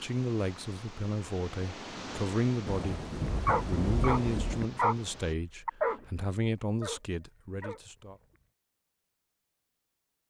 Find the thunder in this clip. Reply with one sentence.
The thunder can be heard from 2.6 to 4.7 s.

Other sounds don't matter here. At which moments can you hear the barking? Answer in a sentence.
You can hear the barking from 3.2 to 5.0 s and from 5.7 to 8.3 s.